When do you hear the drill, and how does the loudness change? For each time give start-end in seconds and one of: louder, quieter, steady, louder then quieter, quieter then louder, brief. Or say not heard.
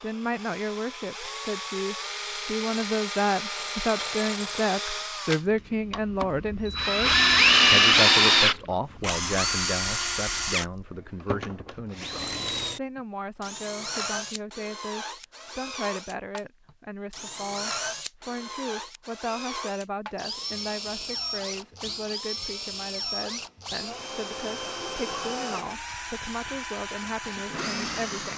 0.0-28.3 louder then quieter.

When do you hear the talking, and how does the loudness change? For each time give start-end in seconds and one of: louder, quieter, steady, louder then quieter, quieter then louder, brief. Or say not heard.
0.0-28.3 quieter.